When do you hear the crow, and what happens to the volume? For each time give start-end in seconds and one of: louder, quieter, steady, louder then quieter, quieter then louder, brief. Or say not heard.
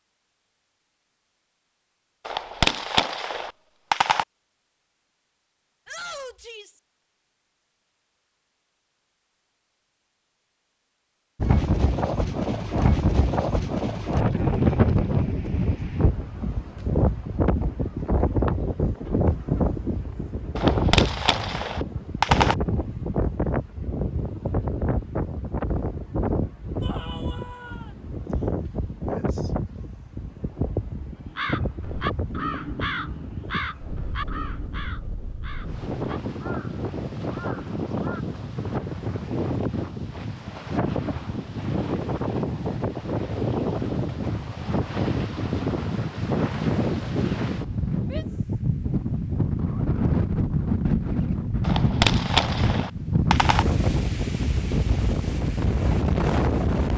31.2-38.2 quieter.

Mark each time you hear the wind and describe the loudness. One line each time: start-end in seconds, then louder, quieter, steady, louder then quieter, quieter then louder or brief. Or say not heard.
11.3-56.9 quieter then louder.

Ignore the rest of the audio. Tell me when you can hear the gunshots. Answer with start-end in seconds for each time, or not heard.
2.2-4.2, 20.6-22.6, 51.6-53.6.